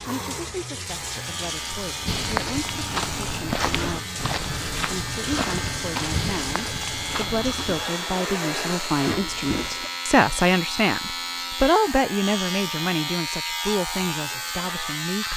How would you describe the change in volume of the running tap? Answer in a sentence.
The volume of the running tap stays about the same.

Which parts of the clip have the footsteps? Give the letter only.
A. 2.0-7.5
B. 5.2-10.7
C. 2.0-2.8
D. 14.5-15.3
A.